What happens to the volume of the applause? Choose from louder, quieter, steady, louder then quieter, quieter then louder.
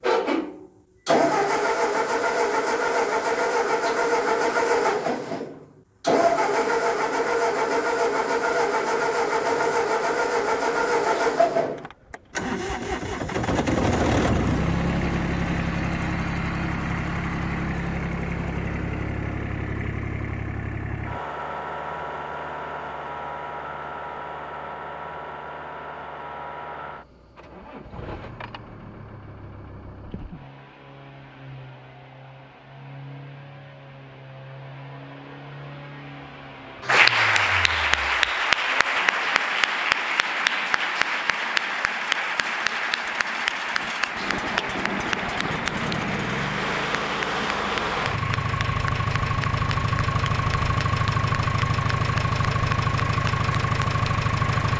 quieter.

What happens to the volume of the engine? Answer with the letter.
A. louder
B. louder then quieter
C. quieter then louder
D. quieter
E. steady
C.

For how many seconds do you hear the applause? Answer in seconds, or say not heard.
18 s.